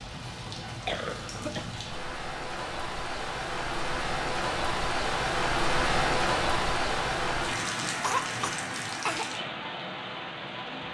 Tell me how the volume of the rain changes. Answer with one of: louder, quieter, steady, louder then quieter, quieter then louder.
louder then quieter.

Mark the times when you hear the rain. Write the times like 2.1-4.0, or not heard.
0.0-10.8.